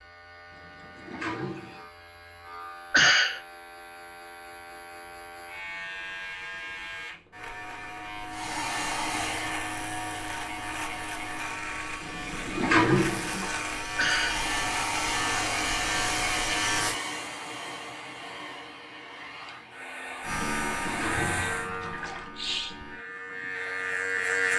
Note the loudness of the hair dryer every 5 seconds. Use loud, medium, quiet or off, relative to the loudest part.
off, loud, loud, loud, loud.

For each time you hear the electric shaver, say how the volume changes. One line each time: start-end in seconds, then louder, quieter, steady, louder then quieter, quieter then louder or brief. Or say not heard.
0.0-16.9 louder
20.2-24.5 quieter then louder.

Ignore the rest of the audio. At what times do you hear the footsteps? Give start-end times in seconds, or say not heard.
not heard.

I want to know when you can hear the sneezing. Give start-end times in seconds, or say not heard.
2.9-3.4, 13.9-14.4, 22.1-22.9.